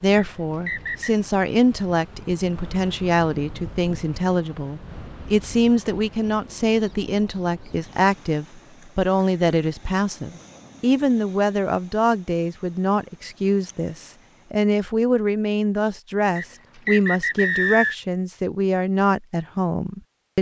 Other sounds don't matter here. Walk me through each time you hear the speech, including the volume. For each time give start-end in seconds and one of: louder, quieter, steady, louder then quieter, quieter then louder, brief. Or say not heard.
0.0-20.3 steady.